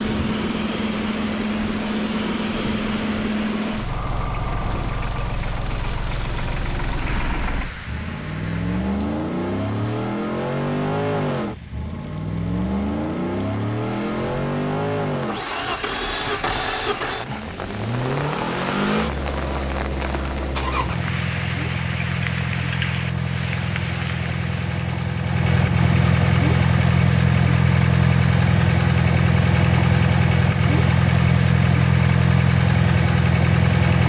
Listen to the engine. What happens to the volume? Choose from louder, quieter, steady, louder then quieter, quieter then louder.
louder.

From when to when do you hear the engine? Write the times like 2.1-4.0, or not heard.
0.0-34.0.